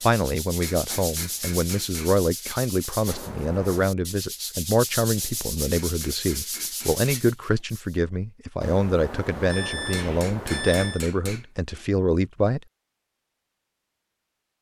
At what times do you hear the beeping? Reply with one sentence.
The beeping can be heard from 3.0 to 4.0 s and from 8.6 to 11.1 s.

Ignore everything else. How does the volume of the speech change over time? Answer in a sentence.
The volume of the speech stays about the same.